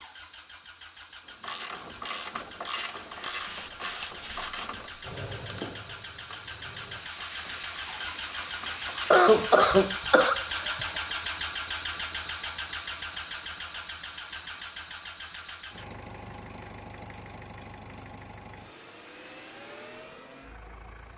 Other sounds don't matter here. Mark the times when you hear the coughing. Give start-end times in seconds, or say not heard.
9.1-10.8.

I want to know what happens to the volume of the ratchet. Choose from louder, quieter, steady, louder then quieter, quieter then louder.
quieter.